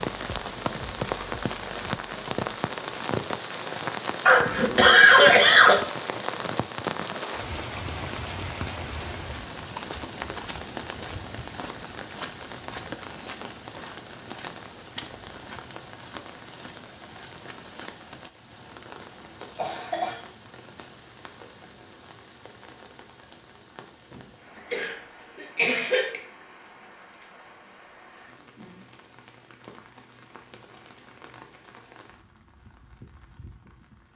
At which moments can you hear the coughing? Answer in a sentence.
The coughing can be heard from 4.2 to 5.8 s, from 19.6 to 20.2 s and from 24.7 to 26.2 s.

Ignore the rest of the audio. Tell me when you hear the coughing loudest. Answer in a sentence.
The loudest moment of the coughing is at 5 seconds.